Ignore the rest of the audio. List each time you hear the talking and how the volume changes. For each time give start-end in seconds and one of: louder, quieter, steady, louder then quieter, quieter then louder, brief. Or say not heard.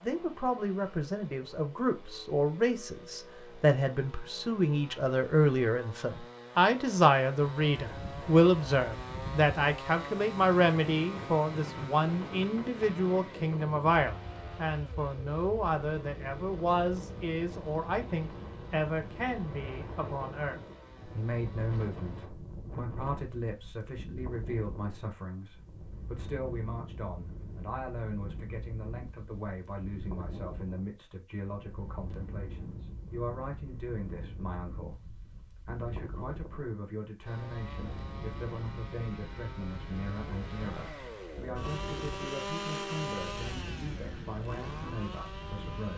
0.0-45.9 quieter.